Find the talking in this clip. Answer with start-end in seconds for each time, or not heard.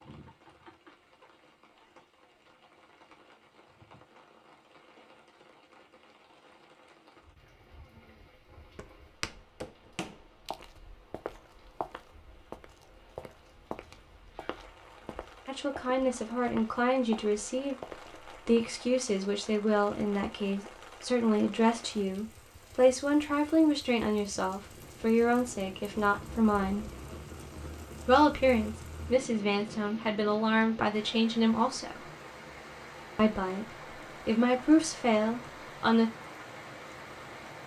15.4-26.9, 28.1-32.1, 33.1-36.1.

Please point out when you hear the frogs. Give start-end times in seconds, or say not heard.
not heard.